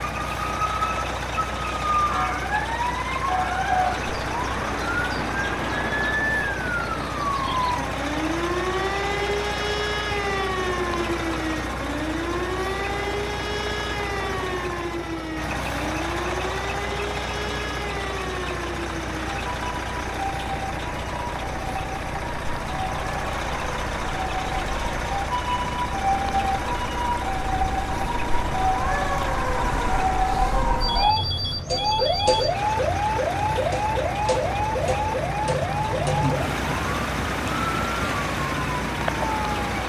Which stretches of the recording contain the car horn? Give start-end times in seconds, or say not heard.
not heard.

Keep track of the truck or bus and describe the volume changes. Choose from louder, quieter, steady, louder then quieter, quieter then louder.
steady.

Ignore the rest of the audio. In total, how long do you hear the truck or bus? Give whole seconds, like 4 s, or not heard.
40 s.